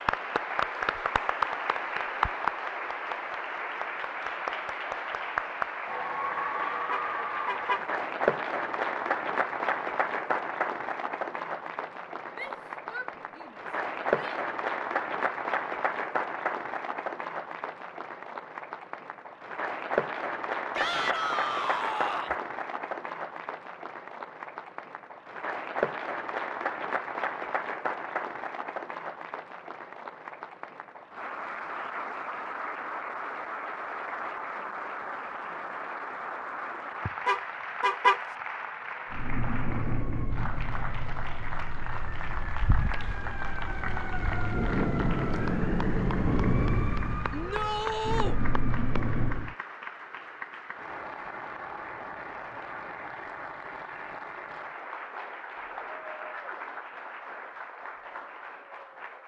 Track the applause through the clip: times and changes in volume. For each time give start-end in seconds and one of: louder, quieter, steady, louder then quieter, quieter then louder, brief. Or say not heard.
0.0-59.2 quieter.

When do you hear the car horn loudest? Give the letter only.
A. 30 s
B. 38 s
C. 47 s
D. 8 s
B.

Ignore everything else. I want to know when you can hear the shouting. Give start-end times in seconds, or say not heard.
12.3-14.3, 20.8-22.4, 47.3-48.4.